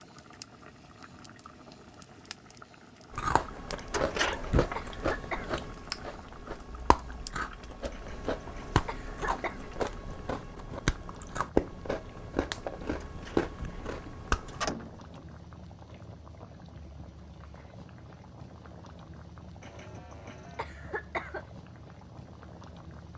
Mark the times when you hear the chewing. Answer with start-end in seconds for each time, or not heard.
3.1-14.7.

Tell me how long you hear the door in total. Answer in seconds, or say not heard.
3 s.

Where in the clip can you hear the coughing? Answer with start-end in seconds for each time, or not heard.
3.8-5.6, 7.9-9.6, 19.6-21.4.